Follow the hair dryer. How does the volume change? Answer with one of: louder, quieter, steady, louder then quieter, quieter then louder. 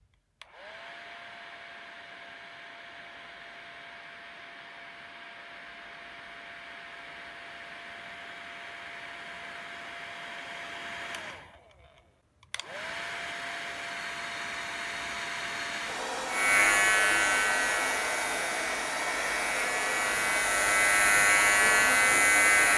louder.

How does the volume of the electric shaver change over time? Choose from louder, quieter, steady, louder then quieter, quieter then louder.
quieter then louder.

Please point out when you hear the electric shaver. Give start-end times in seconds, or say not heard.
16.2-22.7.